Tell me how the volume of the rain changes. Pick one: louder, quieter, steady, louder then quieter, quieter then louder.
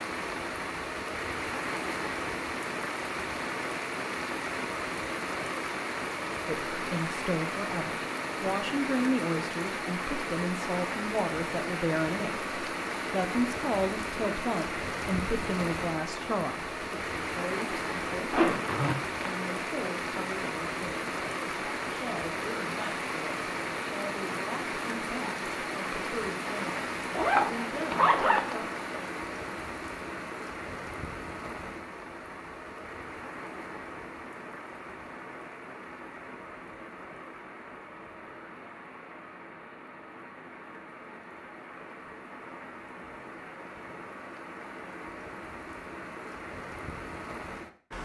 quieter.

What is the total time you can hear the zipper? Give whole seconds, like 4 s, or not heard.
3 s.